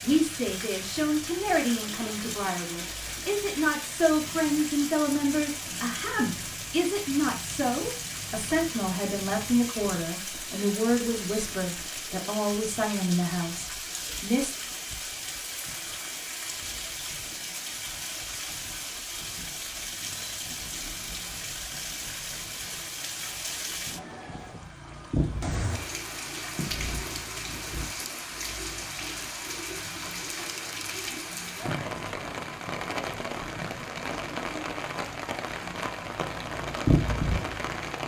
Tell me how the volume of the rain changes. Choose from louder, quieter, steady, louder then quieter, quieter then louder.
steady.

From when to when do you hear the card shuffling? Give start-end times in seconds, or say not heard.
30.4-31.2.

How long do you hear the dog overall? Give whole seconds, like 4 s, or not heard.
not heard.